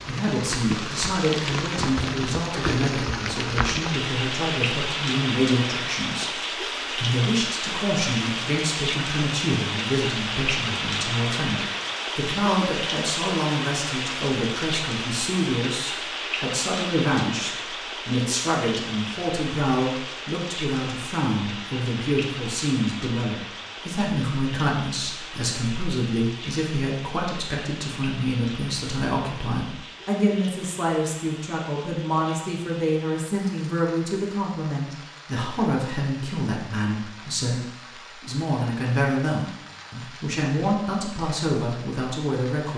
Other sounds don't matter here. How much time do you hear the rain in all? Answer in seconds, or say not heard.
43 s.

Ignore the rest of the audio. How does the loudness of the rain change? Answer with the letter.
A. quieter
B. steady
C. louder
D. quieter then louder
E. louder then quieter
A.